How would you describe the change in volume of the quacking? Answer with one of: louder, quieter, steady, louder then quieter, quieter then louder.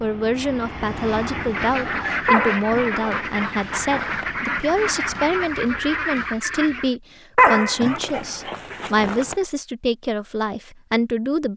steady.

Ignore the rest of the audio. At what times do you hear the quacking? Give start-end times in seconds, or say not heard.
1.2-7.0.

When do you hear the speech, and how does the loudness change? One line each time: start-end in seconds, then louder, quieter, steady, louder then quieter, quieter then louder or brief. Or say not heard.
0.0-11.5 steady.